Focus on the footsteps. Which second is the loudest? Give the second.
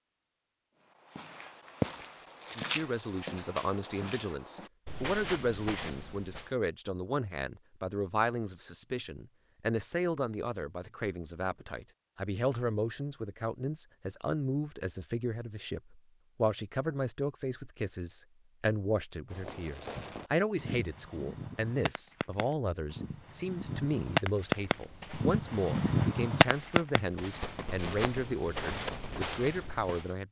2 s.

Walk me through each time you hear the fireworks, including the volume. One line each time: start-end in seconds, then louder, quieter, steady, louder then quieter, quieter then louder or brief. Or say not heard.
19.3-29.3 louder then quieter.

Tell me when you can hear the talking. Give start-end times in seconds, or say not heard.
2.5-30.2.